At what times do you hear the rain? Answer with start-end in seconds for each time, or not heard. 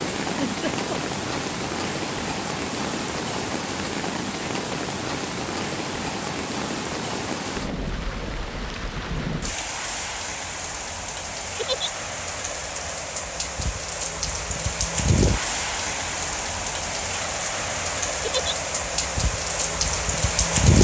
0.0-20.7.